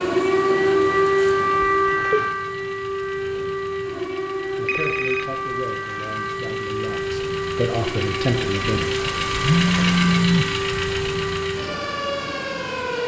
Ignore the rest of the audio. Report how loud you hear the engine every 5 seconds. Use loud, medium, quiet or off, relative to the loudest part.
quiet, loud, loud.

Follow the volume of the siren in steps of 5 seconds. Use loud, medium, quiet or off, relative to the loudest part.
loud, medium, medium.